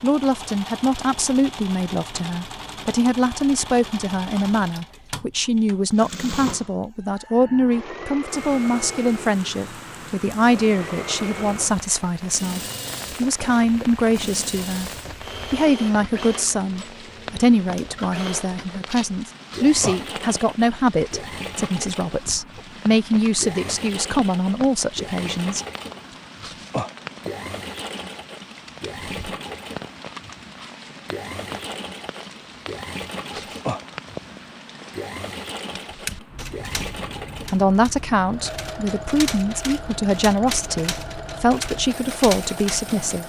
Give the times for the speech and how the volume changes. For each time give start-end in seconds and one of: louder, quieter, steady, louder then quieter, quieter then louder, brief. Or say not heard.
0.0-25.6 steady
37.5-43.2 steady.